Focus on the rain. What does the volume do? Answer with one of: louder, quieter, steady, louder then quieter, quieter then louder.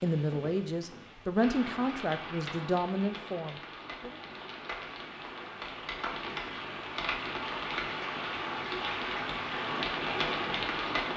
louder.